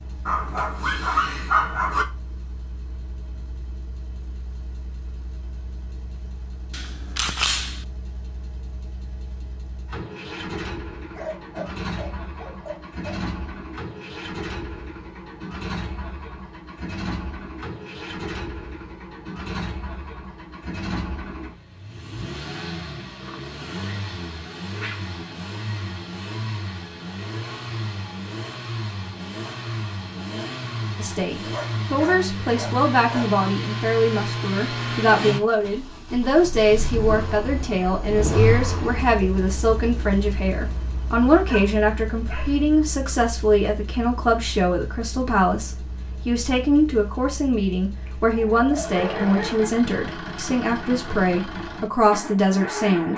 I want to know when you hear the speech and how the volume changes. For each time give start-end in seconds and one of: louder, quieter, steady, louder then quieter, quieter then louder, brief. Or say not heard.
30.9-53.1 steady.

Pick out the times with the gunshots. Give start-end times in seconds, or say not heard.
6.7-7.8.